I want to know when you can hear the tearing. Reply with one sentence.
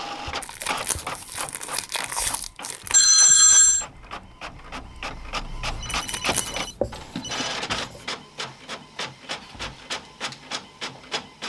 The tearing can be heard from 0.4 to 3.1 s and from 5.9 to 6.7 s.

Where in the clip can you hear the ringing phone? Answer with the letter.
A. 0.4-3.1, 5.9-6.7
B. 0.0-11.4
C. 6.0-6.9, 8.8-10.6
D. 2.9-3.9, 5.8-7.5
D.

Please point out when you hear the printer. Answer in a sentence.
You can hear the printer from 0.0 to 11.4 s.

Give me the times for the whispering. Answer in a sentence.
You can't hear the whispering here.